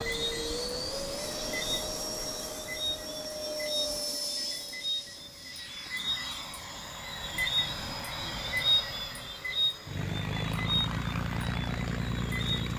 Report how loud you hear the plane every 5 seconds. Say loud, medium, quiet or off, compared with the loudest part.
loud, medium, loud.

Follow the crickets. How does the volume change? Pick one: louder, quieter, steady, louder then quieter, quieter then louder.
louder then quieter.